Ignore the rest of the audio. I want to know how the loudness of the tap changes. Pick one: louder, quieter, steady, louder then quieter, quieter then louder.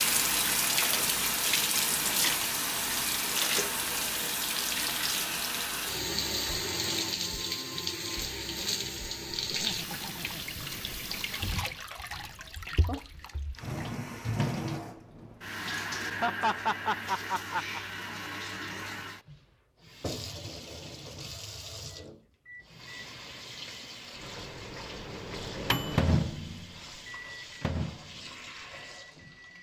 quieter.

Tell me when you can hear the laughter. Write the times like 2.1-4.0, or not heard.
9.4-11.2, 16.0-17.8.